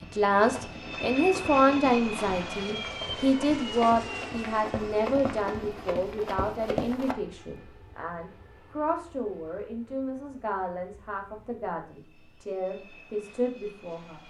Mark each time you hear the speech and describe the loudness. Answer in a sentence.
You can hear the speech from 0.0 to 14.2 s, getting quieter.